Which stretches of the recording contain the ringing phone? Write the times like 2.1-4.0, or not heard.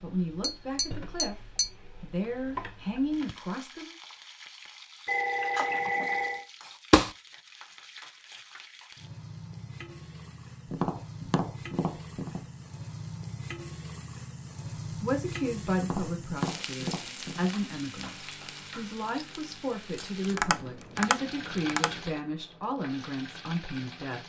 5.0-6.5.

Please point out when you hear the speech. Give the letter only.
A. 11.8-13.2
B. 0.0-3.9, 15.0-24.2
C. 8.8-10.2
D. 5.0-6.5
B.